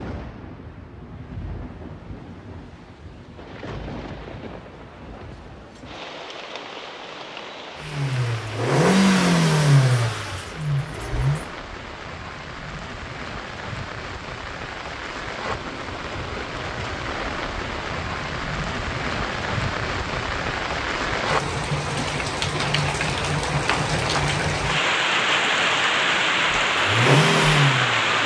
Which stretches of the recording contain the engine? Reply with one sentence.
You can hear the engine from 7.8 to 11.4 s and from 26.7 to 28.1 s.